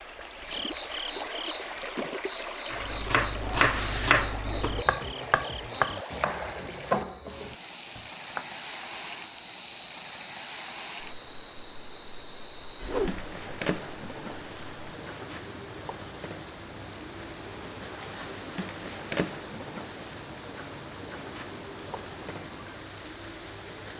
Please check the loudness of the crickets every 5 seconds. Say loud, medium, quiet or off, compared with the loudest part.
medium, medium, loud, loud, loud.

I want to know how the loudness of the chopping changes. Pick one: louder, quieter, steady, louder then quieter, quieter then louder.
quieter.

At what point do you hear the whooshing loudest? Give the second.
13 s.